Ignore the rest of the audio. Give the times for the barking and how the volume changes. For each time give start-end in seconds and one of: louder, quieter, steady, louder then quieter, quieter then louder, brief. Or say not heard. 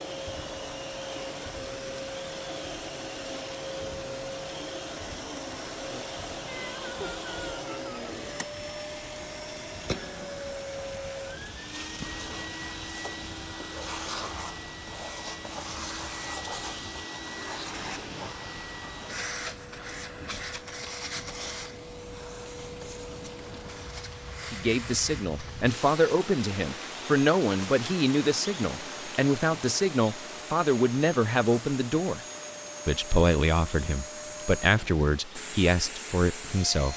not heard.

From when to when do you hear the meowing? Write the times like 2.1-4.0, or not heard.
6.5-8.0.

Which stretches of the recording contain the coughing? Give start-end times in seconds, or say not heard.
not heard.